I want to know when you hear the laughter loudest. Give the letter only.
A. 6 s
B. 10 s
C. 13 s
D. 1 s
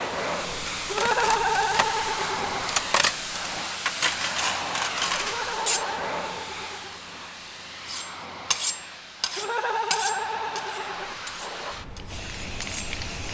D.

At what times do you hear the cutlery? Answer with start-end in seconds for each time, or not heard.
0.5-5.8, 7.8-12.9.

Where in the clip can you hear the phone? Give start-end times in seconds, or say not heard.
not heard.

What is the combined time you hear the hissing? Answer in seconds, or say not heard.
13 s.